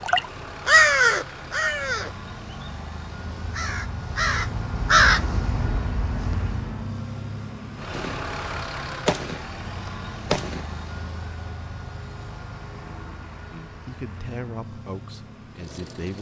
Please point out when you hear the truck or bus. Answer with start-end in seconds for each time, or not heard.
0.0-16.1.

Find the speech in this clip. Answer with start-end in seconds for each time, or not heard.
13.5-16.1.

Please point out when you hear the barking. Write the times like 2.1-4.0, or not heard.
not heard.